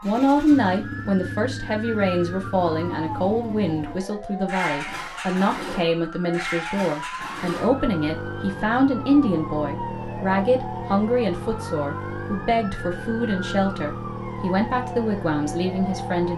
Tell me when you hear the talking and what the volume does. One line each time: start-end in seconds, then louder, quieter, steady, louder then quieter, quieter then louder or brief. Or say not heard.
0.0-16.3 steady.